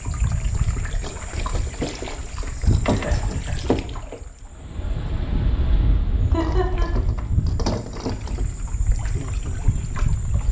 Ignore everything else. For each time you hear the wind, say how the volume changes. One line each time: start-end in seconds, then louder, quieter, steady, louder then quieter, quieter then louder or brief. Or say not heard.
4.4-10.4 quieter.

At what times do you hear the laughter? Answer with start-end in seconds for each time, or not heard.
2.9-3.5, 6.3-6.8.